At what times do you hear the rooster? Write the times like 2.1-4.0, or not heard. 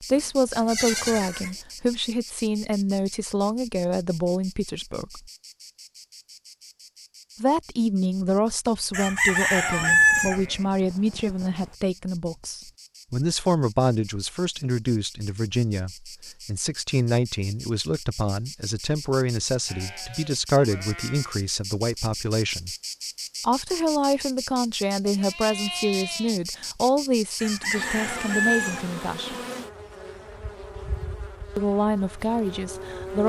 8.9-10.4, 27.4-28.9.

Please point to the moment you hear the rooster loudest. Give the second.
10 s.